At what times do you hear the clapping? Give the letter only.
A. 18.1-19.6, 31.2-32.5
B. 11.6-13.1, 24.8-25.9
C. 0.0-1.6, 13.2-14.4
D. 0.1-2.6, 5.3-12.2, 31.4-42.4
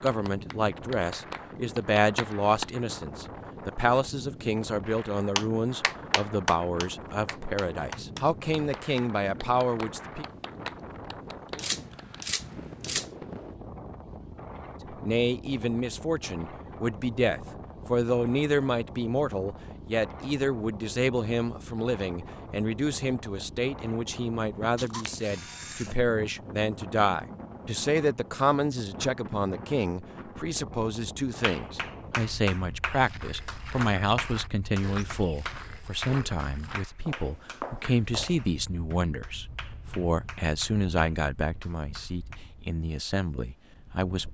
D.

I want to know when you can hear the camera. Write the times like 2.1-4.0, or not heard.
11.6-13.1, 24.8-25.9.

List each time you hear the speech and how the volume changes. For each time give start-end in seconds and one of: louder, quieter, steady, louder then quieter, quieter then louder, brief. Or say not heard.
0.0-10.2 steady
14.9-44.2 steady.